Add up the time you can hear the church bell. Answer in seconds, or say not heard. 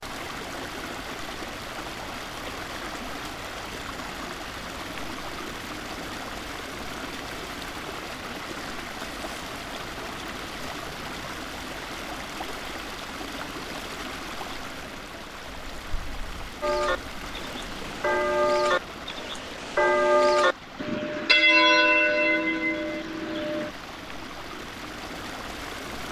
7 s.